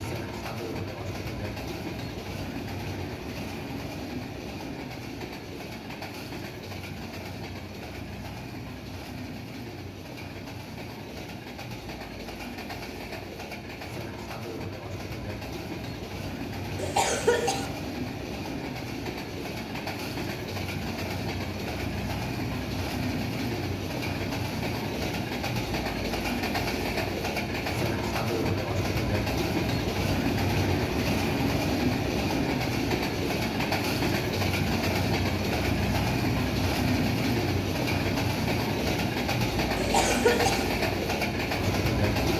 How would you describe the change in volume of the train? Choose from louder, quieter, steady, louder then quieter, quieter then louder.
louder.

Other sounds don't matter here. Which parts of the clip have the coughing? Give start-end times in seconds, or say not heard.
16.8-17.6, 39.8-40.6.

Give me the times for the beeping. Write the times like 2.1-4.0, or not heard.
not heard.